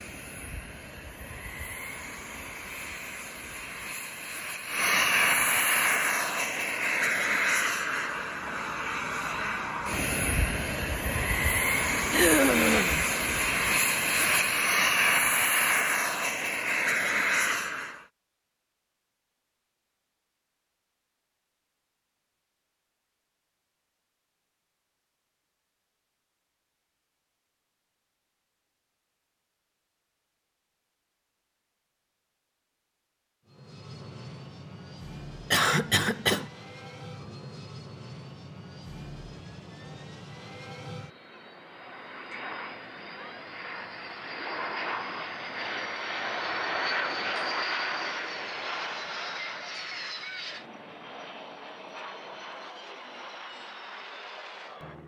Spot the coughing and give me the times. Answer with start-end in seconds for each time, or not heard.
12.1-13.1, 35.5-36.5.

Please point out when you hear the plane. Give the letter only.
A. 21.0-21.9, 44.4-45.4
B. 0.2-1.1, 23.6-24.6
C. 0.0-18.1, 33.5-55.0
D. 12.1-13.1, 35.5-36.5
C.